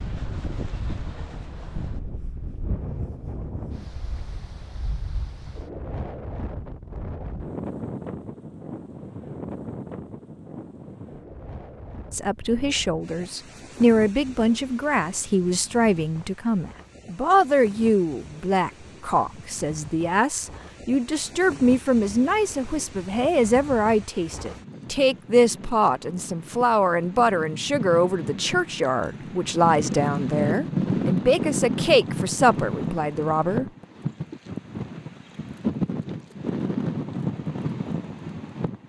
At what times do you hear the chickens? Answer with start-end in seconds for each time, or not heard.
not heard.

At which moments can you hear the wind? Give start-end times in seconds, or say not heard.
0.0-38.8.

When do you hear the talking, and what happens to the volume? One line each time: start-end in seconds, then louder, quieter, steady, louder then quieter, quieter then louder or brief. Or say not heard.
12.1-33.6 steady.